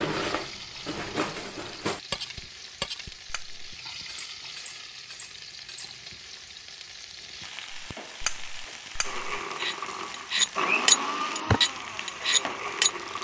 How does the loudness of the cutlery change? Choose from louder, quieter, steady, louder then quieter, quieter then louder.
quieter then louder.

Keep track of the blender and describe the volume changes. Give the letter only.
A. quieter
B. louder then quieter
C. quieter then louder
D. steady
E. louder
B.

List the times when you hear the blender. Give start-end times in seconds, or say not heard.
9.0-13.1.